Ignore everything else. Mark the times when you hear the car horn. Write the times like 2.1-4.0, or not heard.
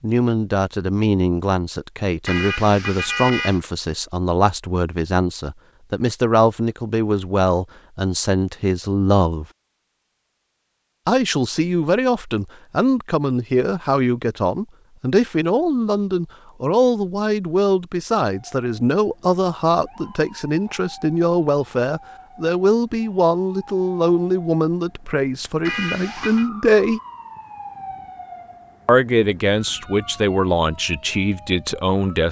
2.2-3.6, 25.6-26.4.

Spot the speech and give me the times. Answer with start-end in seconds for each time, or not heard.
0.0-9.4, 11.1-27.0, 28.9-32.2.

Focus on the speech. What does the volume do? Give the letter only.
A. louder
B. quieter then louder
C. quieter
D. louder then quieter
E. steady
E.